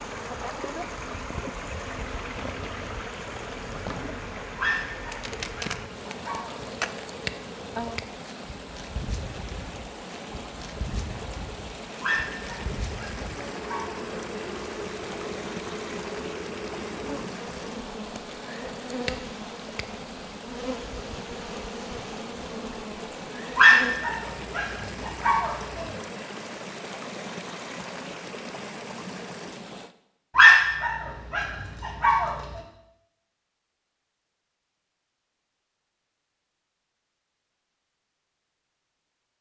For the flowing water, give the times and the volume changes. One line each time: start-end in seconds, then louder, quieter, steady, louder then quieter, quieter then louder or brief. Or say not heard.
0.0-29.9 steady.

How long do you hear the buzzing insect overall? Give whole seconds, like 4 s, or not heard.
24 s.